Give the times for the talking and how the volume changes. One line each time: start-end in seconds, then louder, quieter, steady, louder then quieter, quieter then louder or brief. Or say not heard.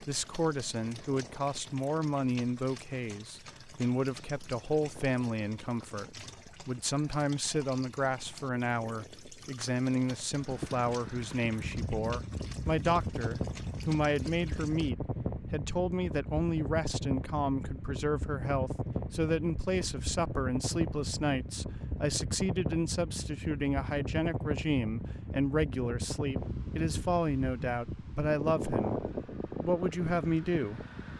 0.0-30.9 steady.